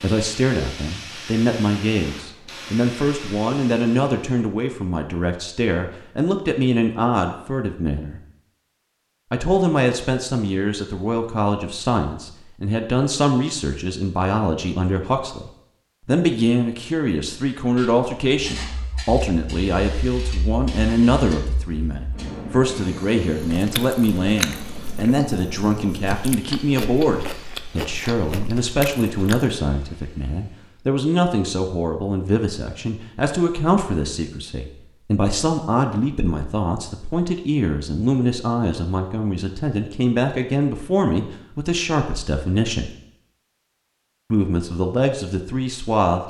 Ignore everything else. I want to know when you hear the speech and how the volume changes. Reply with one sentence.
You can hear the speech from 0.0 to 8.2 s, at a steady volume; from 9.3 to 42.9 s, at a steady volume; and briefly from 44.3 to 46.2 s.